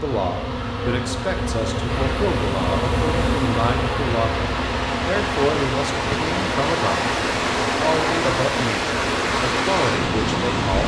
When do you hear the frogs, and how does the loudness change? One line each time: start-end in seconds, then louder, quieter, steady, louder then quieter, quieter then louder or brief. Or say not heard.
not heard.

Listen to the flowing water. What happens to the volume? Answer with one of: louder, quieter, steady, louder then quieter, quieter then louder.
louder.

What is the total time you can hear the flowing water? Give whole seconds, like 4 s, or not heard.
9 s.